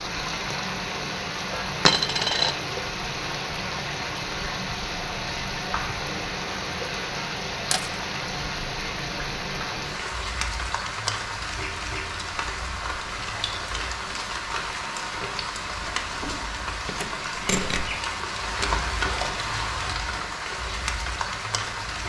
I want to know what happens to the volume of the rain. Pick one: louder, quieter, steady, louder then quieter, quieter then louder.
steady.